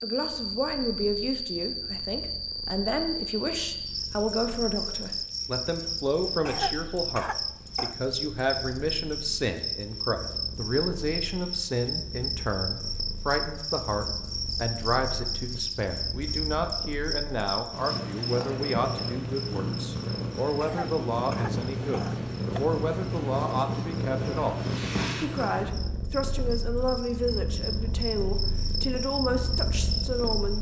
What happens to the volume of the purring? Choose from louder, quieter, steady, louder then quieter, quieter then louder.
louder.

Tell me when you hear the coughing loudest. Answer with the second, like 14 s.
7 s.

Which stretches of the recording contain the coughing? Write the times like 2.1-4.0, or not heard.
6.5-8.0, 20.6-22.6.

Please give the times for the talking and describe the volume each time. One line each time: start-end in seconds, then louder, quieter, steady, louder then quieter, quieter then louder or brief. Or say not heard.
0.0-30.5 steady.